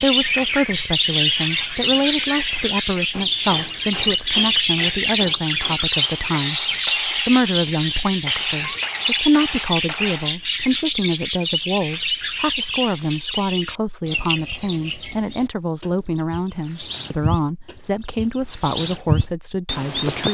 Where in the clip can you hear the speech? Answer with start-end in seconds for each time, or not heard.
0.0-20.2.